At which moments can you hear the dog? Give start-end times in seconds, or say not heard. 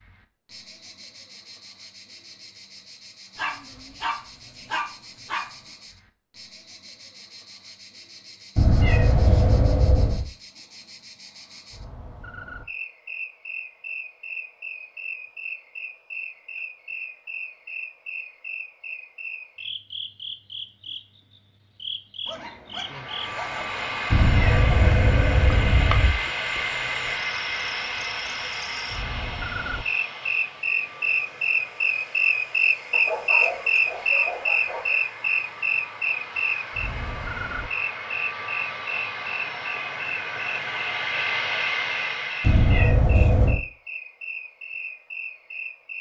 3.4-5.5, 22.2-24.1, 32.9-35.0.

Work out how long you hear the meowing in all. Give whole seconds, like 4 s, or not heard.
5 s.